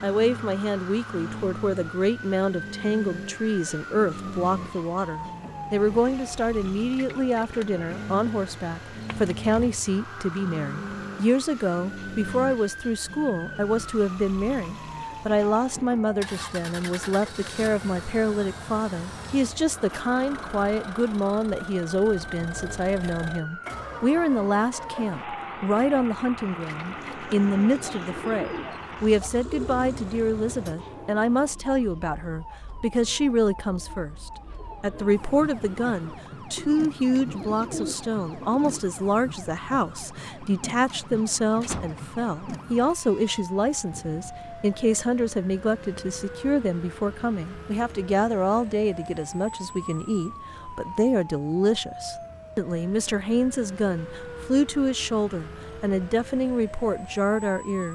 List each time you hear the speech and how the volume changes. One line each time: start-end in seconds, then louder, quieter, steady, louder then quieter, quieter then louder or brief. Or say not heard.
0.0-57.9 steady.